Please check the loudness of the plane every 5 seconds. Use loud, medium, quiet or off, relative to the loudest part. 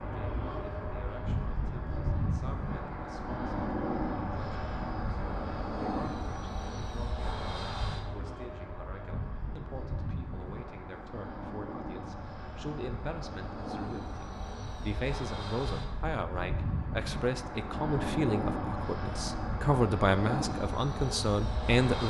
loud, loud, medium, loud, loud.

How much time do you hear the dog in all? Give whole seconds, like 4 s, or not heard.
not heard.